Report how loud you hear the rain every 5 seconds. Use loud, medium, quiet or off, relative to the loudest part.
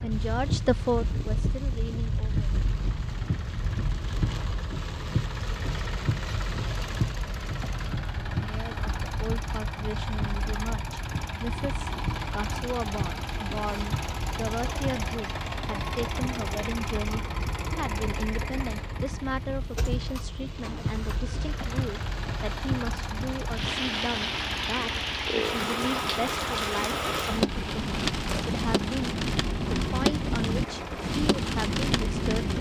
medium, medium, medium, quiet, medium, loud, loud.